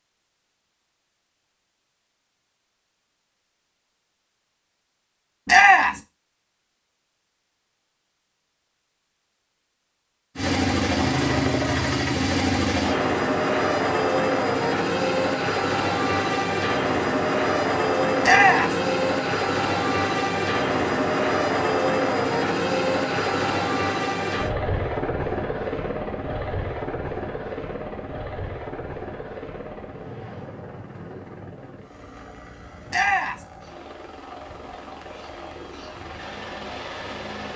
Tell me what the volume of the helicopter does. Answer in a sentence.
The loudness of the helicopter goes down.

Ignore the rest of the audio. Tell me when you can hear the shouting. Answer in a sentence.
The shouting can be heard from 5.5 to 6.0 s, from 18.2 to 18.8 s and from 32.9 to 33.5 s.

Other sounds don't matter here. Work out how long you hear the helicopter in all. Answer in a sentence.
You can hear the helicopter for 27 seconds altogether.